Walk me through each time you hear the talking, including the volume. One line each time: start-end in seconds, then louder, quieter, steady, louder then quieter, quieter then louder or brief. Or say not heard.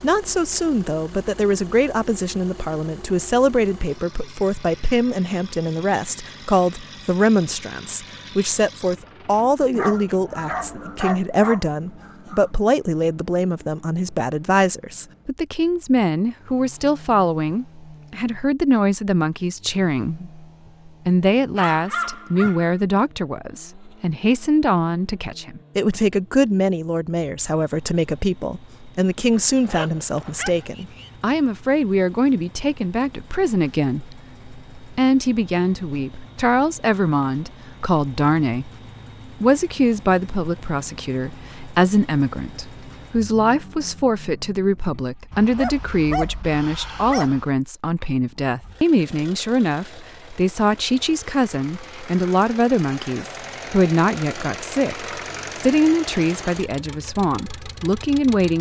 0.0-38.7 steady
39.4-58.5 steady.